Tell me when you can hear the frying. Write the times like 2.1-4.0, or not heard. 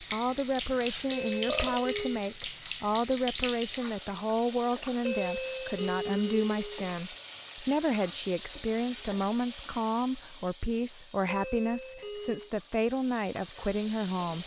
0.0-14.4.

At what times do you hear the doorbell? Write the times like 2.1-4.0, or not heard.
1.1-2.2, 5.0-6.8, 11.2-12.5.